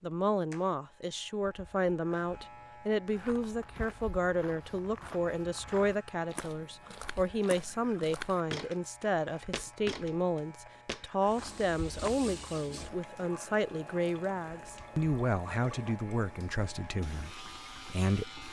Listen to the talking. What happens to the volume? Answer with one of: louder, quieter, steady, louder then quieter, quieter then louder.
steady.